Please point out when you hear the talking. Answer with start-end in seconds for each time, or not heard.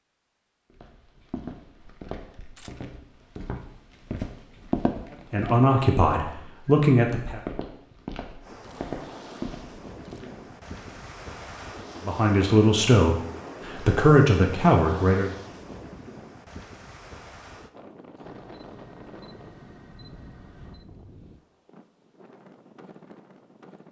5.3-7.4, 12.1-15.3.